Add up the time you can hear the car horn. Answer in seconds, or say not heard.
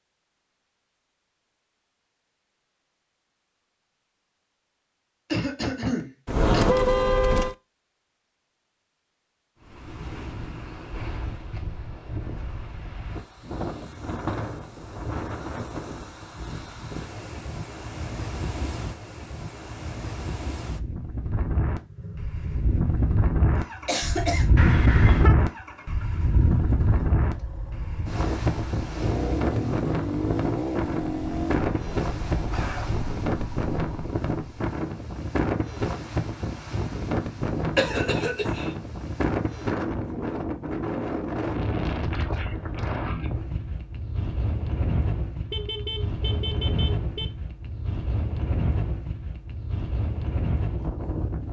4 s.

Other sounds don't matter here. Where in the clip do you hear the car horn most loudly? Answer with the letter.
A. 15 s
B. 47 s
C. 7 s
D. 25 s
C.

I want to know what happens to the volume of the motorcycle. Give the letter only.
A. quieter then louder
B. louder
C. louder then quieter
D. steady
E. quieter
C.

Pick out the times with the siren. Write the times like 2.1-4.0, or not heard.
not heard.